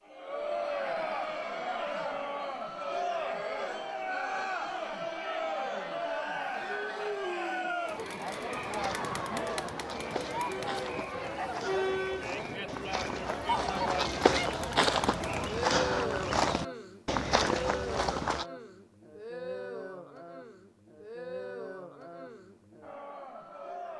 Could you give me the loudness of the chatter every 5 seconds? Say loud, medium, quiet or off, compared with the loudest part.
loud, loud, loud, loud, medium.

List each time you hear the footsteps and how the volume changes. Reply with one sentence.
You can hear the footsteps from 8.7 to 18.4 s, getting louder.